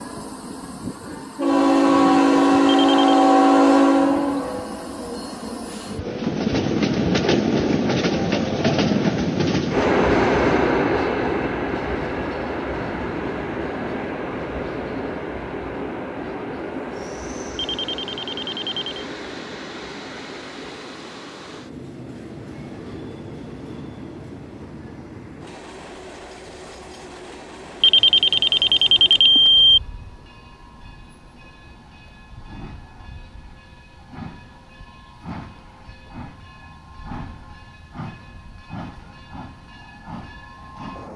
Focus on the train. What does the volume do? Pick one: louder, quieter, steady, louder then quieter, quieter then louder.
quieter.